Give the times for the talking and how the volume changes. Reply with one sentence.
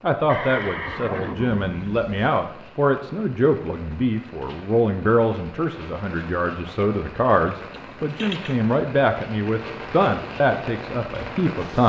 You can hear the talking from 0.0 to 11.8 s, at a steady volume.